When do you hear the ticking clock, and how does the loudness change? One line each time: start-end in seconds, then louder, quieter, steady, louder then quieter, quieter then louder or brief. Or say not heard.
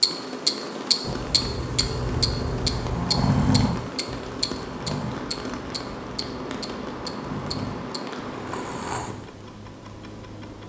0.0-10.6 quieter.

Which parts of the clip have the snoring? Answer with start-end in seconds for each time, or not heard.
1.1-9.2.